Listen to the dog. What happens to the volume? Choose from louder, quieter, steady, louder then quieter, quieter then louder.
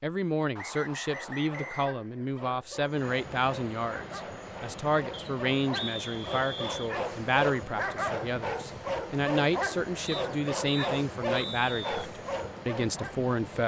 louder.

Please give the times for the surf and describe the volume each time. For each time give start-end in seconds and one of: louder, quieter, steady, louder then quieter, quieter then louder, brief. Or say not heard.
not heard.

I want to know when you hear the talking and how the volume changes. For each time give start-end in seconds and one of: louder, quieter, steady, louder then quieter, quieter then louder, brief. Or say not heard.
0.0-13.6 steady.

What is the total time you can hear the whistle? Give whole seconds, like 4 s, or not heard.
5 s.